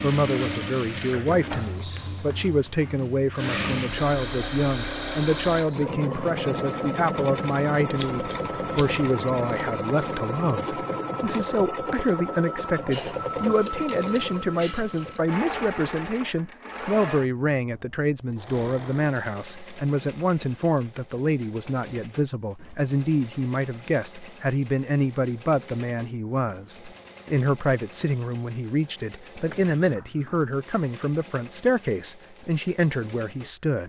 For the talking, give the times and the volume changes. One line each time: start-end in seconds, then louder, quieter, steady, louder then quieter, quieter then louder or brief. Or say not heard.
0.0-33.8 steady.